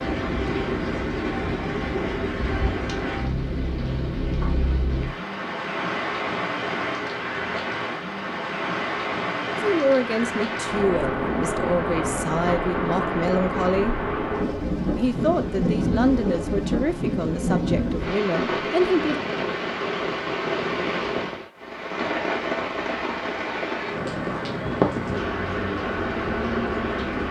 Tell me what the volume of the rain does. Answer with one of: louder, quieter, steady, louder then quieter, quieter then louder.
steady.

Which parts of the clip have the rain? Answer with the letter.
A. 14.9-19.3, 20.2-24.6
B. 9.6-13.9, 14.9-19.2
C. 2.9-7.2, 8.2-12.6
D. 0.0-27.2
D.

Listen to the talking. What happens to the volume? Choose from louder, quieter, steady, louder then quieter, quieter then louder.
steady.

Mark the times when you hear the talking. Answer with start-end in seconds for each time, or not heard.
9.6-13.9, 14.9-19.2.